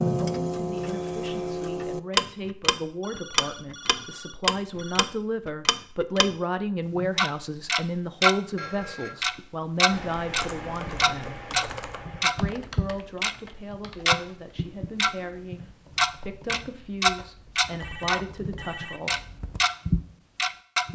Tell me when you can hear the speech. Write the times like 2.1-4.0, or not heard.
0.2-11.4, 12.2-19.1.